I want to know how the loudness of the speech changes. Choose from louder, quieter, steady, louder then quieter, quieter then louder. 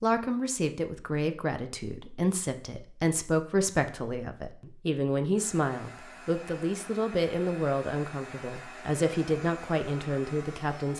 steady.